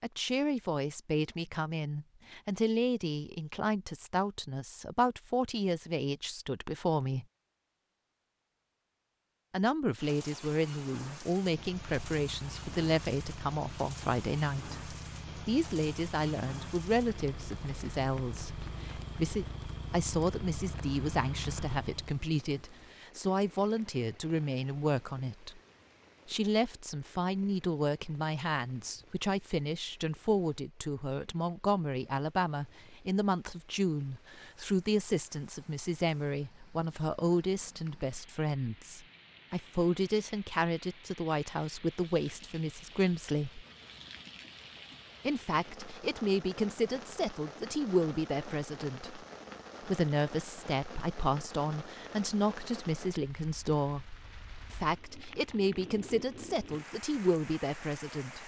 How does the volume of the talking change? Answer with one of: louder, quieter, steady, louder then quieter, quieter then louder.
steady.